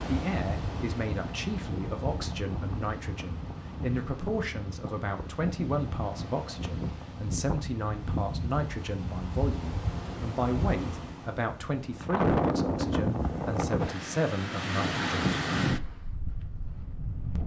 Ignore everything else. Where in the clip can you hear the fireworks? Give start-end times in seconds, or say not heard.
not heard.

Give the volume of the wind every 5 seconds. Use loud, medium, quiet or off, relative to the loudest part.
medium, medium, loud, loud.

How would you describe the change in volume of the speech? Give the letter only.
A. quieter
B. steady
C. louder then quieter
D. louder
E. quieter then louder
B.